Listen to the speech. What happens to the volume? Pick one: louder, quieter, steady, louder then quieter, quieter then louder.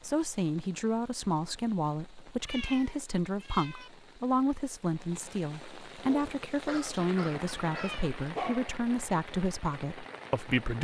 steady.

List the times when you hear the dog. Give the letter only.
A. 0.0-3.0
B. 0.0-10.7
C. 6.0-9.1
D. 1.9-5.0
C.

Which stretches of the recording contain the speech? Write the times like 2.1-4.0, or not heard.
0.0-10.7.